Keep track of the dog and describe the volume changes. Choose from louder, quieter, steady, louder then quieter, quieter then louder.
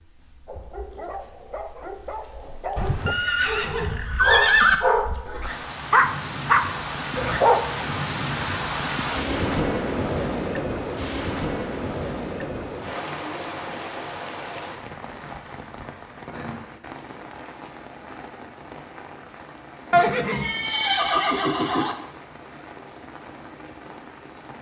louder.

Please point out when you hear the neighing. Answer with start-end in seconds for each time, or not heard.
2.8-4.8, 19.9-21.9.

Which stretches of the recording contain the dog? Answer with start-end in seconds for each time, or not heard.
0.5-7.6.